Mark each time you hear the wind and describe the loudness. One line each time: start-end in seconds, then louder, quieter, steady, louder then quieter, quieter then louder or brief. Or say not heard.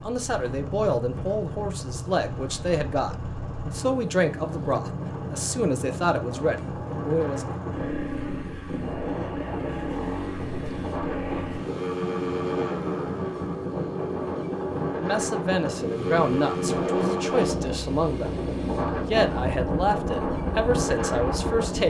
0.0-21.8 louder.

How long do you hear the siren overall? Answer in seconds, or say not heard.
not heard.